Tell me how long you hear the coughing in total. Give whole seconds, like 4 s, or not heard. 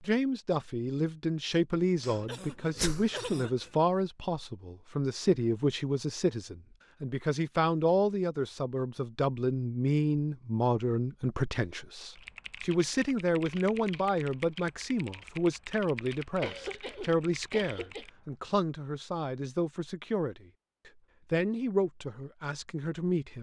3 s.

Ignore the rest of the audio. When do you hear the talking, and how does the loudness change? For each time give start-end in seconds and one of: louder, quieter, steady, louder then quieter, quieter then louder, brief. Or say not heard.
0.0-23.3 steady.